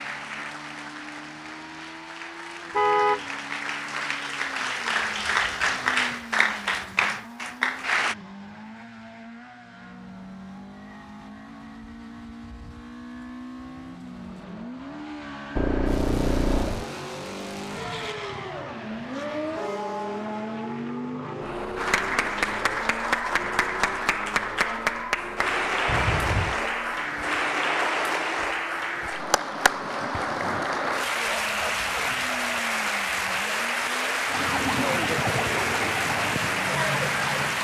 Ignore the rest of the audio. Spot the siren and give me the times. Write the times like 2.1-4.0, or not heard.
34.2-37.6.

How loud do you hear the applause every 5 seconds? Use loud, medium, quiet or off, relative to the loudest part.
medium, loud, off, off, loud, loud, loud, loud.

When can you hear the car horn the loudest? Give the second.
3 s.